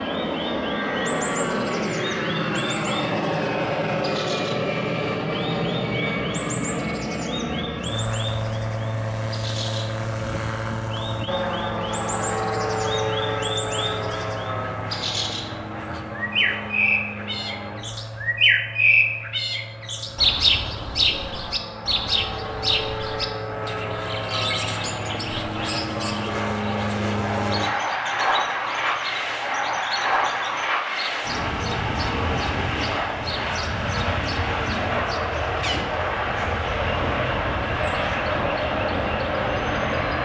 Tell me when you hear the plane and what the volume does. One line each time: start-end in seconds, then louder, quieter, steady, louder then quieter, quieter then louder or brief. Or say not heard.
0.0-40.2 quieter then louder.